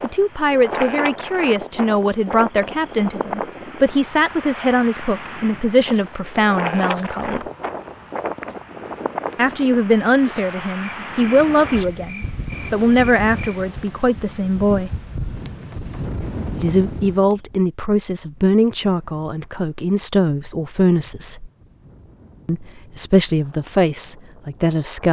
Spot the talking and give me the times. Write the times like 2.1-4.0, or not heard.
0.0-7.5, 9.3-14.9, 16.6-21.5, 22.4-25.0.